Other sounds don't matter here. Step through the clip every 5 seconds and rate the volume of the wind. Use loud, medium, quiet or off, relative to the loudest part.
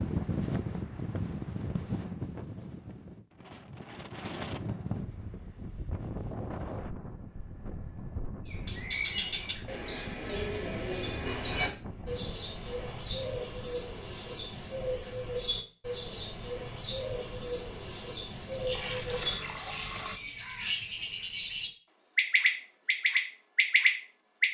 loud, medium, medium, off, off.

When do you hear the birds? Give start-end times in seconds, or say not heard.
8.4-24.4.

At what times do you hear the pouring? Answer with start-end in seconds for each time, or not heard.
18.5-20.2.